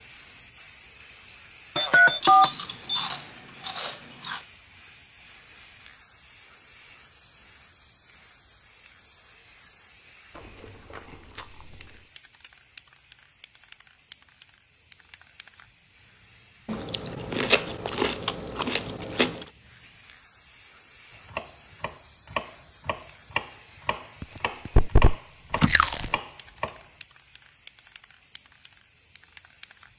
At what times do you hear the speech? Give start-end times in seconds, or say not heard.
not heard.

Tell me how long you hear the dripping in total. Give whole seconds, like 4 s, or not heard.
not heard.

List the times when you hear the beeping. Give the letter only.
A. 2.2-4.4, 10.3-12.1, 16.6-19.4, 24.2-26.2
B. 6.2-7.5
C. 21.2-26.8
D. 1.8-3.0
D.